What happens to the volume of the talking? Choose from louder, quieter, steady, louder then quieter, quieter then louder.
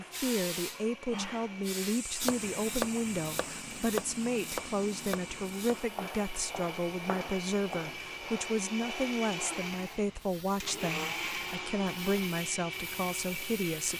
steady.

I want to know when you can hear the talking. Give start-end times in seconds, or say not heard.
0.0-13.9.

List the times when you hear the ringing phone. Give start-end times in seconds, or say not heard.
not heard.